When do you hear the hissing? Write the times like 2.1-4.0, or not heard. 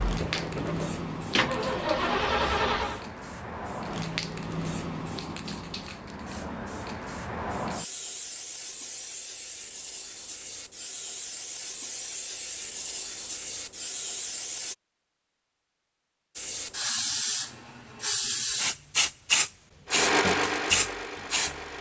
0.0-14.8, 16.4-21.7.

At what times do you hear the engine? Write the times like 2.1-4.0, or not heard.
0.0-3.0, 19.9-21.7.